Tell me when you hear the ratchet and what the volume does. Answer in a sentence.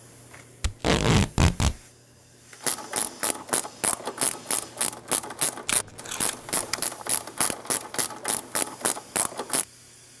The ratchet can be heard from 2.6 to 9.7 s, at a steady volume.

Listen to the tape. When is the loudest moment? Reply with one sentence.
The loudest moment of the tape is at 1 second.